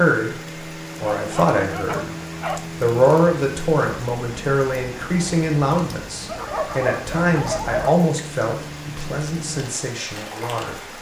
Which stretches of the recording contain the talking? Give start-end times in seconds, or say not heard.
0.0-2.1, 2.8-10.9.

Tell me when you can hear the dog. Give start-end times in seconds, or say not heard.
1.0-2.6, 6.2-8.0.